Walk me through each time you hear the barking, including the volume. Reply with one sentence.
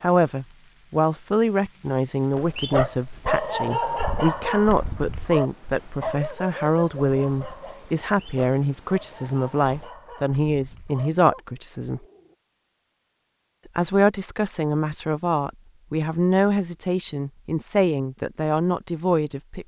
The barking can be heard from 2.3 to 12.3 s, getting quieter.